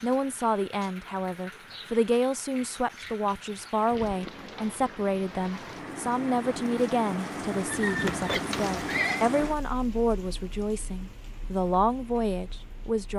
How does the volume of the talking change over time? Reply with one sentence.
The volume of the talking stays about the same.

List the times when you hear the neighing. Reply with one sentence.
The neighing can be heard from 7.7 to 9.2 s.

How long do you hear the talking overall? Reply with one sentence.
You can hear the talking for 13 seconds altogether.